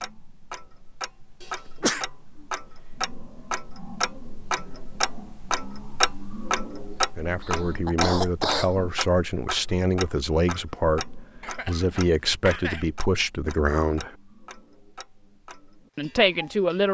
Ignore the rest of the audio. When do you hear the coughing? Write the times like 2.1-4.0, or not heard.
1.4-2.0, 7.4-8.9, 11.4-13.0.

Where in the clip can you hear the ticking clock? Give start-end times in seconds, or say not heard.
0.0-16.9.